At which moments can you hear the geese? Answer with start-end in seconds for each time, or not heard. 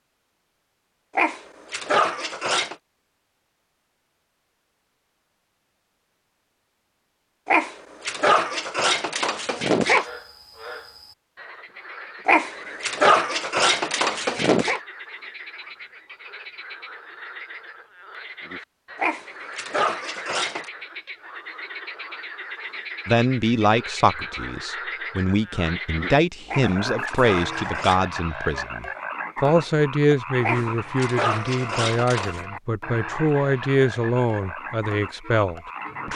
not heard.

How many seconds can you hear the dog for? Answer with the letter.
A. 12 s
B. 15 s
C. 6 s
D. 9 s
A.